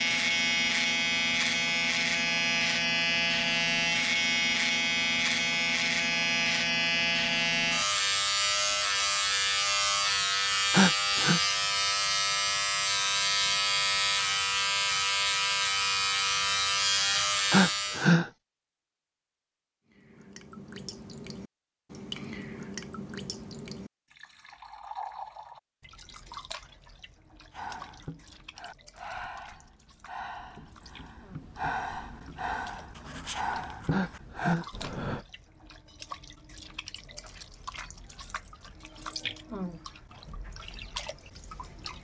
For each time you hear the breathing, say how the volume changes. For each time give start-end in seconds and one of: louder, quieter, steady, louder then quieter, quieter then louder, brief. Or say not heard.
27.5-35.2 louder.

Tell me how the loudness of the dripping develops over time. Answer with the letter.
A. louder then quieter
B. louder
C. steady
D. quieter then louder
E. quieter
D.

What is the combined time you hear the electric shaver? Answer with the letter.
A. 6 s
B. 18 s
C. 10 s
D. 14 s
B.